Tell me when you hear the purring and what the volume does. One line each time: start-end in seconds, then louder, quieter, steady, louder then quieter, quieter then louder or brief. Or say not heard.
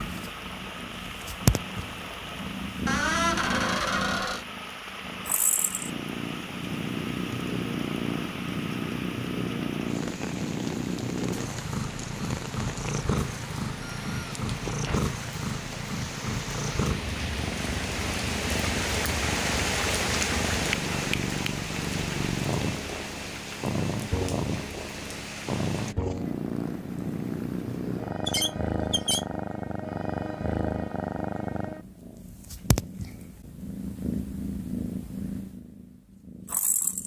0.0-37.0 steady.